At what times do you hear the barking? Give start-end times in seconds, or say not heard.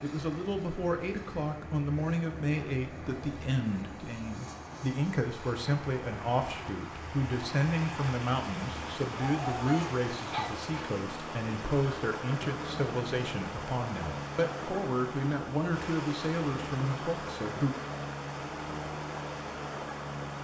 9.2-10.9.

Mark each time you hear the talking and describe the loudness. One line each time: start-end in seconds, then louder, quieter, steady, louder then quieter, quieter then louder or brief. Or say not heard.
0.0-17.8 steady.